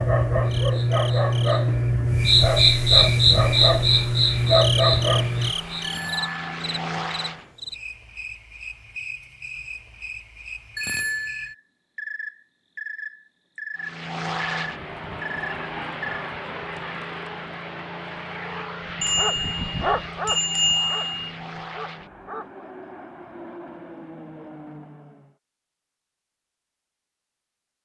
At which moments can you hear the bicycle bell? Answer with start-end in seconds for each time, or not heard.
5.8-6.3, 10.8-11.6, 19.0-21.4.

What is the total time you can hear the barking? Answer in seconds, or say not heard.
9 s.